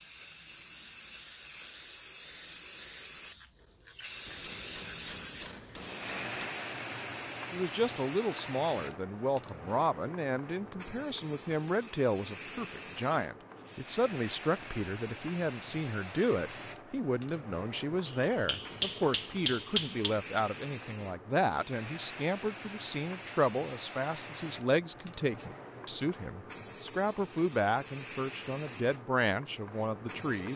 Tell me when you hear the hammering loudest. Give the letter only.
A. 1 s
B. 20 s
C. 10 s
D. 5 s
B.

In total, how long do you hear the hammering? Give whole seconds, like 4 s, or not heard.
4 s.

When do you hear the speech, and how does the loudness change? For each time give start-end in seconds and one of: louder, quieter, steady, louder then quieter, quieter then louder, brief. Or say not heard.
7.5-30.5 steady.